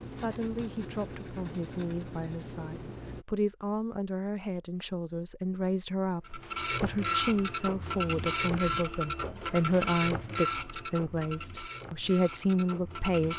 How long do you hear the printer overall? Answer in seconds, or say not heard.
7 s.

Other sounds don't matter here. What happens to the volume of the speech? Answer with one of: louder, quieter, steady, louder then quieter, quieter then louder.
louder.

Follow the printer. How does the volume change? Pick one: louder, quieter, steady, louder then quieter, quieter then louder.
quieter.